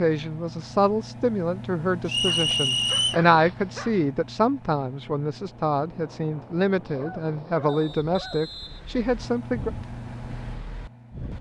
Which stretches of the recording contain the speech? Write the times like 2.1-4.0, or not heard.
0.0-9.7.